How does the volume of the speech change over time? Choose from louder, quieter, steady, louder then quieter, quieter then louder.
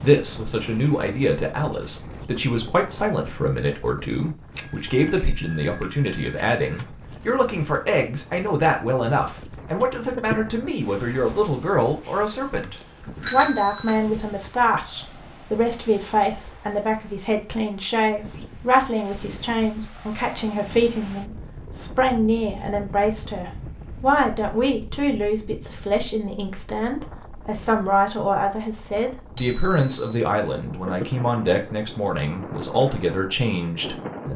steady.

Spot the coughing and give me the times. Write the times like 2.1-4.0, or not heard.
9.8-10.4, 30.4-31.1.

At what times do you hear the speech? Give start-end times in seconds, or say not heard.
0.0-34.3.